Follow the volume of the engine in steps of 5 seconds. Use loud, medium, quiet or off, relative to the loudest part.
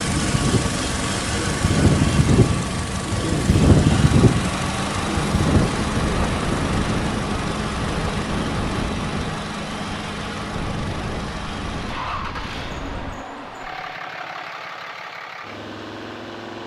loud, loud, medium, medium.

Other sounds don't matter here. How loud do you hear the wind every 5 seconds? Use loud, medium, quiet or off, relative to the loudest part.
loud, medium, quiet, off.